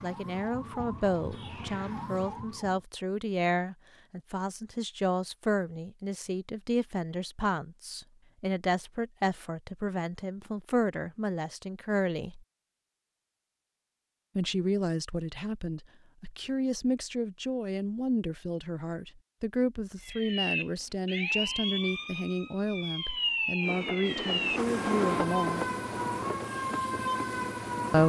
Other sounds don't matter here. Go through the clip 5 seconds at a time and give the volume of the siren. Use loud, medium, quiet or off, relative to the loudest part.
medium, off, off, off, loud, loud.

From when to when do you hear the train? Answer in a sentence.
You can hear the train from 23.6 to 28.0 s.